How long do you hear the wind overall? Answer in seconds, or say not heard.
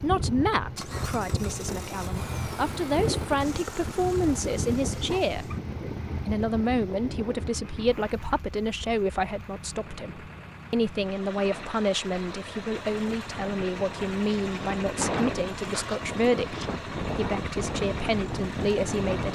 19 s.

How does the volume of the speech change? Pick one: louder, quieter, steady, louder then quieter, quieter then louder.
steady.